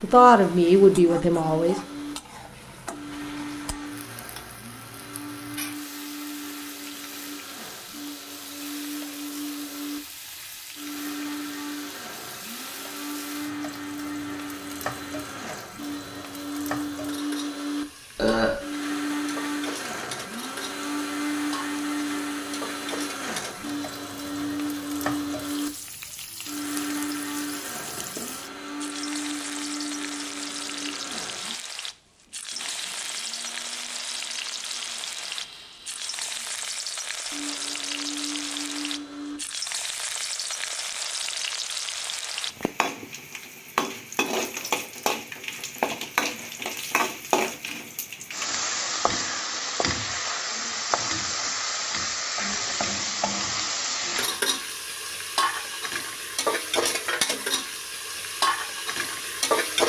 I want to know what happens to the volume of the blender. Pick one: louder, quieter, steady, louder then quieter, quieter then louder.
louder then quieter.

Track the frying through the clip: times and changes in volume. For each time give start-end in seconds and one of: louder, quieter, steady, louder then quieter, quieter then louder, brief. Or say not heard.
0.0-59.8 louder.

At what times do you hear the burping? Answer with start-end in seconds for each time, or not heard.
18.1-18.6.